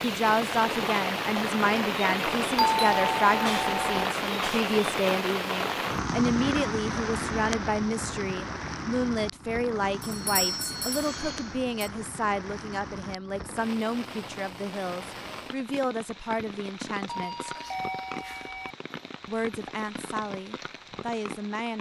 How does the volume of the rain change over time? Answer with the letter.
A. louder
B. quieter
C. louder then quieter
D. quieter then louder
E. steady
B.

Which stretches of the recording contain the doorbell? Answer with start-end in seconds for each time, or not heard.
2.5-4.0, 10.0-11.9, 17.1-18.8.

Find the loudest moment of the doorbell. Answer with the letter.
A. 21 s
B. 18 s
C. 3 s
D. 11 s
C.